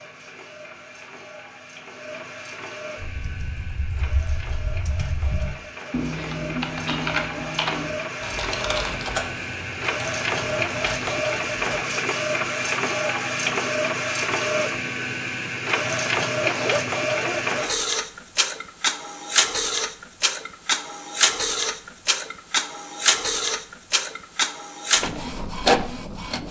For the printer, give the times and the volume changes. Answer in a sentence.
The printer can be heard from 0.0 to 26.4 s, getting louder.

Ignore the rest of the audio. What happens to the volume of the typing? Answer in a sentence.
The volume of the typing goes up, then down.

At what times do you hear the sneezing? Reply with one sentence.
You can hear the sneezing from 16.3 to 17.4 s.